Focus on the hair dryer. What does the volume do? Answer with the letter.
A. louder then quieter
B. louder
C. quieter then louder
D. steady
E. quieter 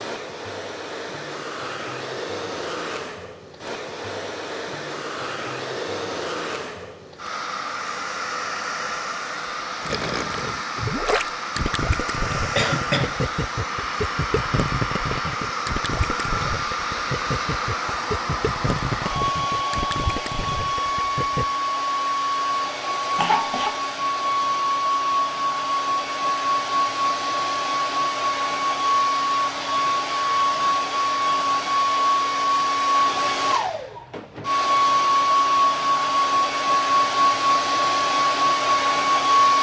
B.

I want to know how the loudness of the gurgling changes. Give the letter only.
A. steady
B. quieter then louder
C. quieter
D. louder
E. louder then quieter
A.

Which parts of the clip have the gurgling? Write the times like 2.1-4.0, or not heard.
9.8-21.4.